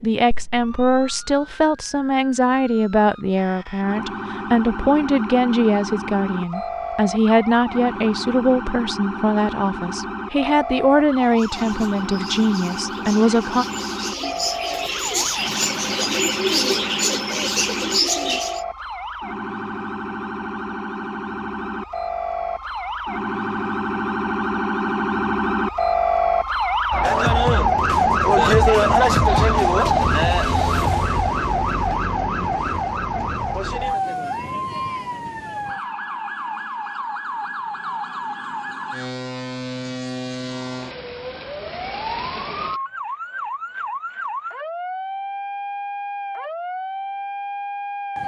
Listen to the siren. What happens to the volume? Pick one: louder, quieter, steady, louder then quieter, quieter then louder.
louder then quieter.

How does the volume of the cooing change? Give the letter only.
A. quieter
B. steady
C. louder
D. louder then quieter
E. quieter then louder
C.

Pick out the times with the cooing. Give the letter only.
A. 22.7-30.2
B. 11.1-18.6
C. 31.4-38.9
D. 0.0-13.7
B.